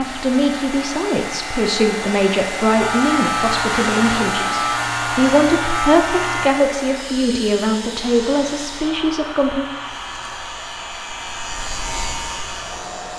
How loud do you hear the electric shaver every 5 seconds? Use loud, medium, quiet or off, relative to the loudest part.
loud, loud, medium.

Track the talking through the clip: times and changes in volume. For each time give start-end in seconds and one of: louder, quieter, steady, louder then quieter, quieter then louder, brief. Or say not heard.
0.0-9.7 steady.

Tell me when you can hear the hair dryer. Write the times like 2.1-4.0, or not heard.
0.0-13.1.